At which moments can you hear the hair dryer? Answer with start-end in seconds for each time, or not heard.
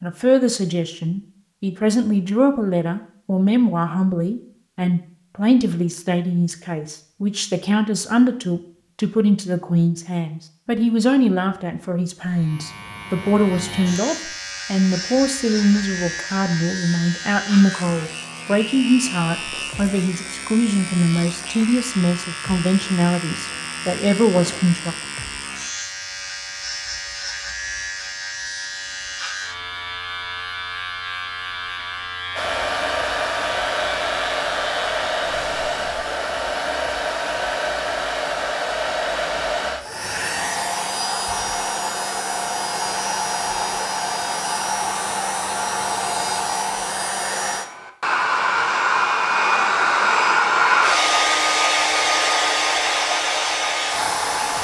32.4-54.6.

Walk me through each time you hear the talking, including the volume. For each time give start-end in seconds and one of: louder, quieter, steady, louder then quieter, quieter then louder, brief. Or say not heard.
0.0-24.9 steady.